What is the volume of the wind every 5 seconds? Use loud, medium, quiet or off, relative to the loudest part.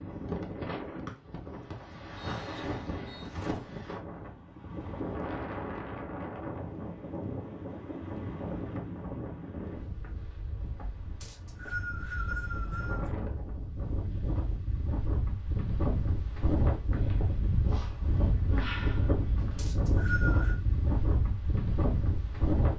medium, medium, medium, loud, loud.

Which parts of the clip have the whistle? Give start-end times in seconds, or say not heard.
1.7-3.3, 11.2-13.1, 19.6-20.6.